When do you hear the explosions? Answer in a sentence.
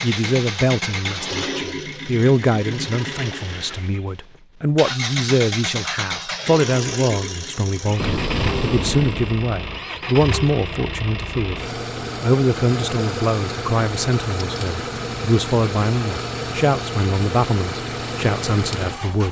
The explosions can be heard from 8.0 to 9.4 s.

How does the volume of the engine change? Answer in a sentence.
The volume of the engine stays about the same.